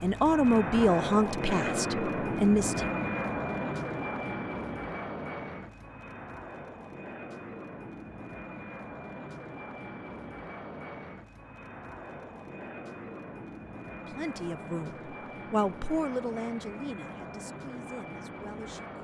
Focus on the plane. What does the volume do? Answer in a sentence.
The volume of the plane goes down.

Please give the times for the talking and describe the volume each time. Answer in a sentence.
The talking can be heard briefly from 0.0 to 2.9 s; and from 14.1 to 18.9 s, getting louder then quieter.